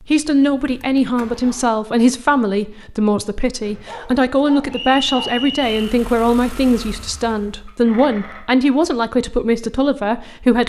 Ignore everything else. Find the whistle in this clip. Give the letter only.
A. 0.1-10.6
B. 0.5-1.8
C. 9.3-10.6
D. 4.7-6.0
D.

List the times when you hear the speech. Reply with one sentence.
The speech can be heard from 0.1 to 10.6 s.